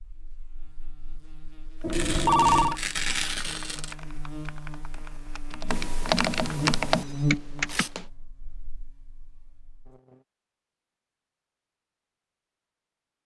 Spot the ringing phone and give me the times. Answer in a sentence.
The ringing phone can be heard from 1.8 to 2.8 s and from 7.0 to 8.1 s.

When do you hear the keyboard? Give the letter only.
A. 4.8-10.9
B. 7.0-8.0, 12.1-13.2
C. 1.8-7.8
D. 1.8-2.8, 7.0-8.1
C.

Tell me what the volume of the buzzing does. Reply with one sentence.
The volume of the buzzing goes up, then down.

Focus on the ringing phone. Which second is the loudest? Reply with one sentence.
The loudest moment of the ringing phone is at 2 seconds.